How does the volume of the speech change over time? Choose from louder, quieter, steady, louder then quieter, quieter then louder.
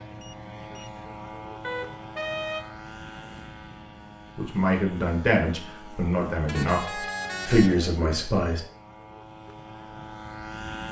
quieter then louder.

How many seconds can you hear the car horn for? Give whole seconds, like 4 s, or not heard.
3 s.